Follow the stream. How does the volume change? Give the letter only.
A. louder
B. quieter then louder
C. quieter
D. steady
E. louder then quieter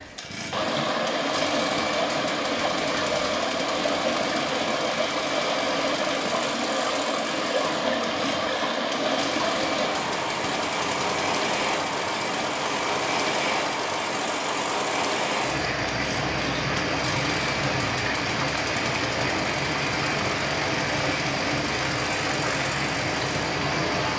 D.